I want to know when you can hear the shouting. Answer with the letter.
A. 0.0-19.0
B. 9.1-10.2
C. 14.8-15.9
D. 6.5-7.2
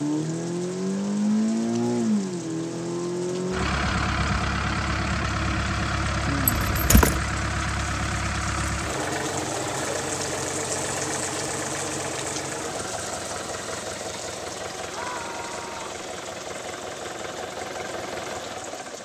C.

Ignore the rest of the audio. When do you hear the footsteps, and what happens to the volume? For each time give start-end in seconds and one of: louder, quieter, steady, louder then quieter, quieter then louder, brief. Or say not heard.
not heard.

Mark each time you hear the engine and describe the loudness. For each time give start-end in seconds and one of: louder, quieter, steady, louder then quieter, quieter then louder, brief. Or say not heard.
0.0-19.0 quieter.